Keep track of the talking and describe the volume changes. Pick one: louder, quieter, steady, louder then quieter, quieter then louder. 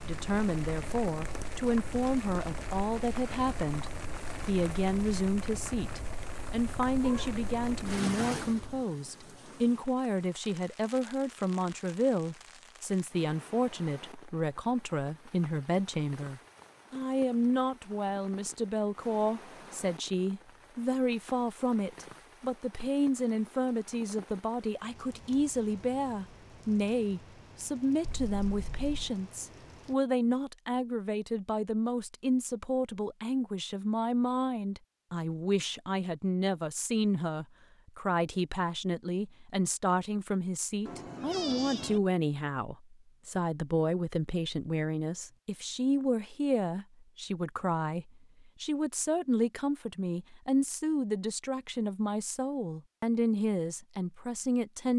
steady.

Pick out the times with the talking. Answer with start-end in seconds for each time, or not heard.
0.0-3.9, 4.5-54.9.